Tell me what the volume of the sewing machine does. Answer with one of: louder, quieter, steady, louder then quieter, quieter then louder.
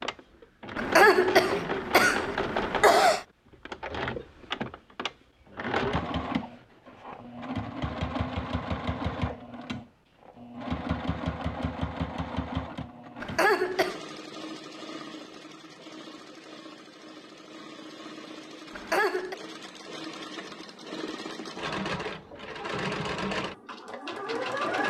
quieter then louder.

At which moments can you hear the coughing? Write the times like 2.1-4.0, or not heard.
0.8-3.2, 13.2-14.0, 18.7-19.4.